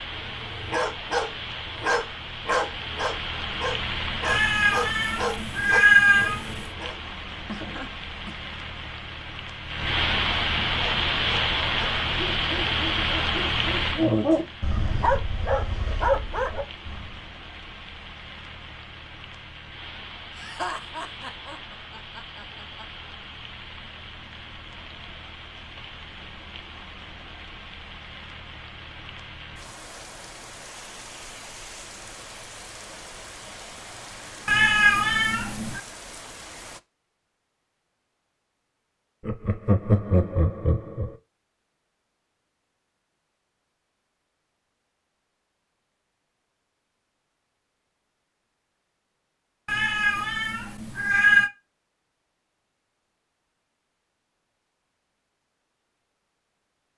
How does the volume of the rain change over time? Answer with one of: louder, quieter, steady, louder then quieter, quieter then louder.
louder then quieter.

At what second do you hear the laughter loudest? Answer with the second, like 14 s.
40 s.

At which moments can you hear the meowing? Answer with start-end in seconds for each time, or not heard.
4.2-6.7, 34.5-35.8, 49.6-51.5.